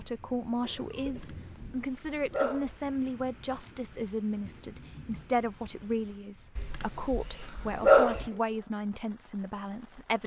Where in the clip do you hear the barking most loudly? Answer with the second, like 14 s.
8 s.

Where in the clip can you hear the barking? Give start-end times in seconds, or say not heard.
1.1-2.8, 6.5-8.2.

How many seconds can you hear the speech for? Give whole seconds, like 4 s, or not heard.
10 s.